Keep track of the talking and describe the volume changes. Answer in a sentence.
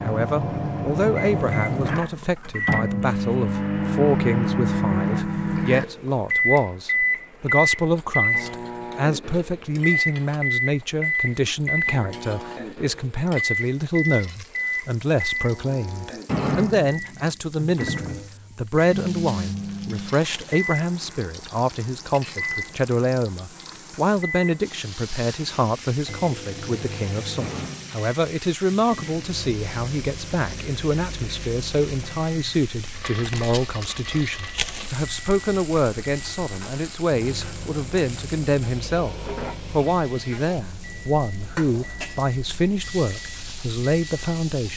The loudness of the talking stays about the same.